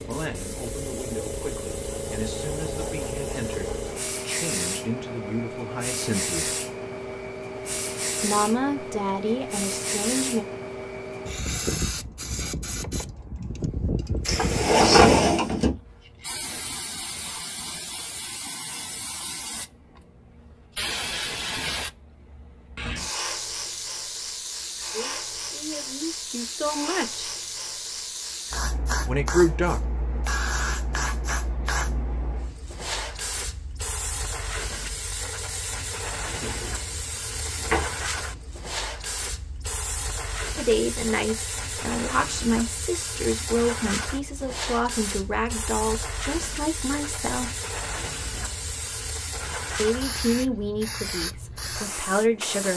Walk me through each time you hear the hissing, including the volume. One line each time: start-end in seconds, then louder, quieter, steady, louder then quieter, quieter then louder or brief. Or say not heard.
0.0-52.7 steady.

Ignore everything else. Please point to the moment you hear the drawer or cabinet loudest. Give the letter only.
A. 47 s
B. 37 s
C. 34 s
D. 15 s
D.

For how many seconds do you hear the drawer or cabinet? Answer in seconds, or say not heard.
3 s.